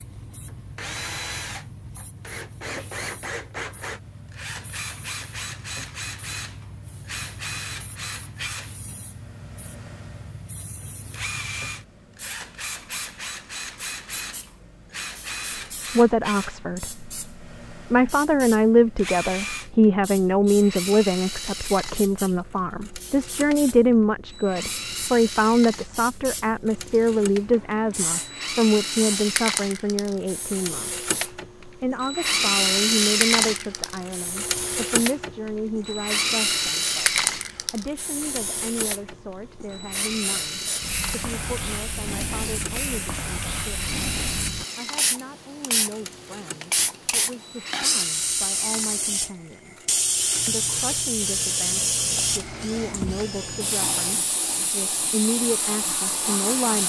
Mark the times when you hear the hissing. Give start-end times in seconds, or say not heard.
0.0-56.8.